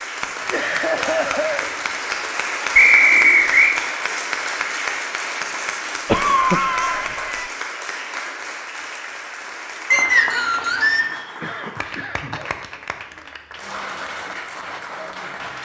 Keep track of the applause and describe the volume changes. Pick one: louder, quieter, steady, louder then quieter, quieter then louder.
quieter.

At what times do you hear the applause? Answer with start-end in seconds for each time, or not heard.
0.0-15.5.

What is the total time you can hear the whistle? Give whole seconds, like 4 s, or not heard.
2 s.